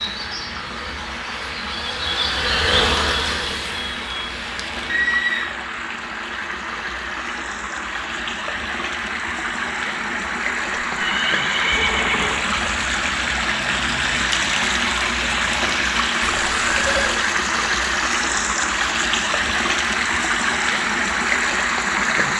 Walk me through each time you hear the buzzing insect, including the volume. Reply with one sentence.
You can hear the buzzing insect from 0.0 to 5.0 s, getting louder then quieter.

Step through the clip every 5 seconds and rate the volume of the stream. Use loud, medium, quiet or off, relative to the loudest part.
medium, medium, loud, loud, loud.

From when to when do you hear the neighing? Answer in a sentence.
The neighing can be heard from 4.8 to 5.5 s, from 10.8 to 12.4 s and from 16.2 to 17.2 s.